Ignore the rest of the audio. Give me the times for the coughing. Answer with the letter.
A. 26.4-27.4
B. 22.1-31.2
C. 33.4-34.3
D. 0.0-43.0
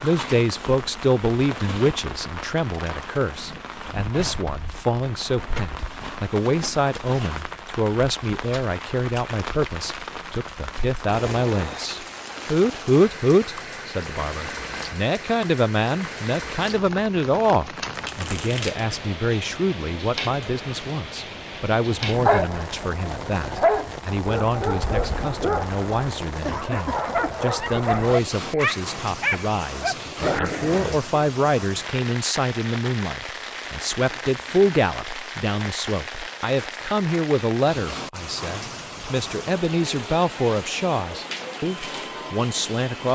A.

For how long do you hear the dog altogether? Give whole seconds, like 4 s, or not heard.
9 s.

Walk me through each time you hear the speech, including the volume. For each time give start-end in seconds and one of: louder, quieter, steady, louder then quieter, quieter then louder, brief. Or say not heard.
0.0-43.0 steady.